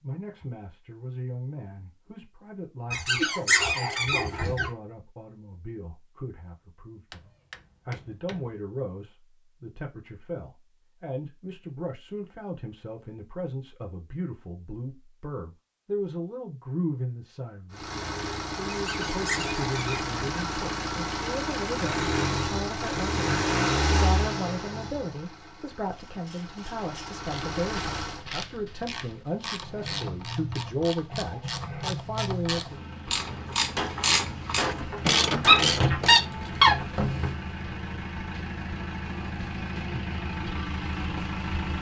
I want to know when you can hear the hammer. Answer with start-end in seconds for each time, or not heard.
7.1-8.5, 33.8-35.7.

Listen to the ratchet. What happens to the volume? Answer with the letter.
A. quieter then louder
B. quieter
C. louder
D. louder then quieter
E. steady
C.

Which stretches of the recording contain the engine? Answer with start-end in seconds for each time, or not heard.
17.7-28.2, 29.6-41.7.